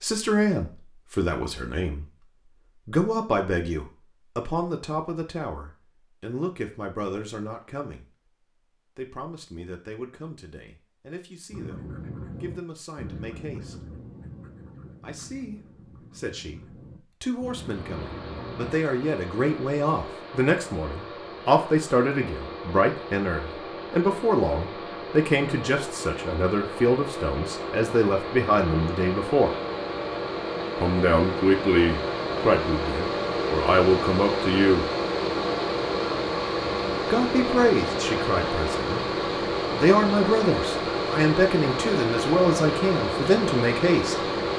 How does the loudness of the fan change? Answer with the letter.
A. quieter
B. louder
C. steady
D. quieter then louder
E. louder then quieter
B.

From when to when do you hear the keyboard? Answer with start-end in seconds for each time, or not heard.
not heard.